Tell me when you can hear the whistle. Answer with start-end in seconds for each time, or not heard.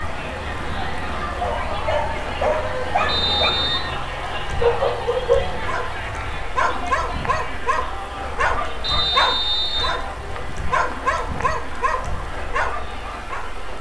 3.0-3.8, 8.8-9.9.